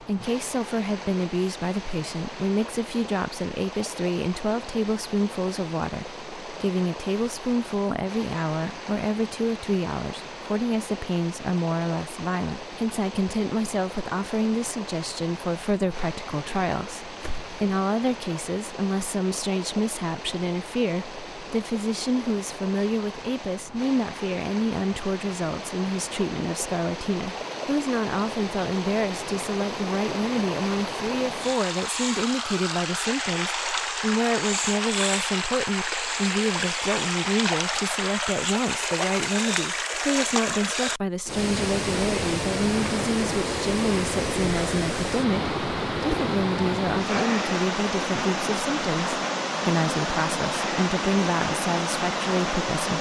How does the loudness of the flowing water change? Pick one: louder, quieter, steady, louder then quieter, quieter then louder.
louder.